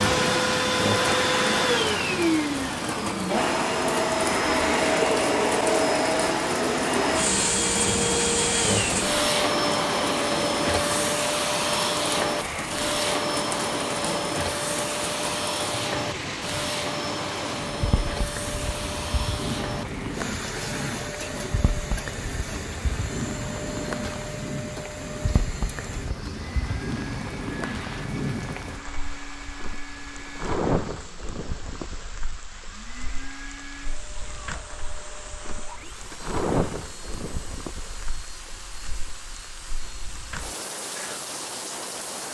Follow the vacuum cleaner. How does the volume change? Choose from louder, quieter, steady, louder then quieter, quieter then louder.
quieter.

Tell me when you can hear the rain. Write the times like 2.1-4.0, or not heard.
0.0-42.2.